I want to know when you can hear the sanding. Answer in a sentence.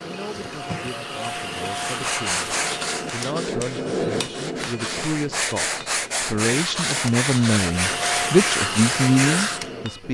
The sanding can be heard from 1.8 to 9.7 s.